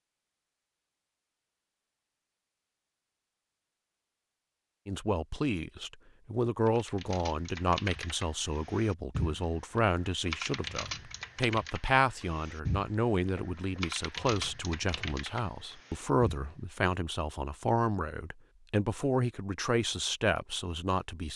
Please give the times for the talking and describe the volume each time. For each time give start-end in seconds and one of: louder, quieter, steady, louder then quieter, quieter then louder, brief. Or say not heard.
4.8-21.3 steady.